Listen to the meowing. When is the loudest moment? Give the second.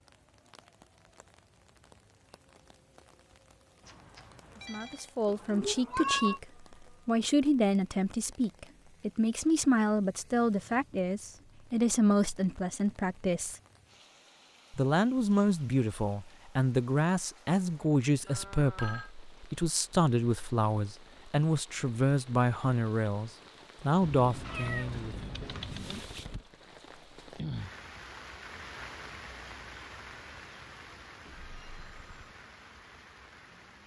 6 s.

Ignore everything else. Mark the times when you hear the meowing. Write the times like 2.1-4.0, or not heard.
5.2-6.4, 24.0-26.1.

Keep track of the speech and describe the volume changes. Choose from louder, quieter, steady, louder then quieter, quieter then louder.
steady.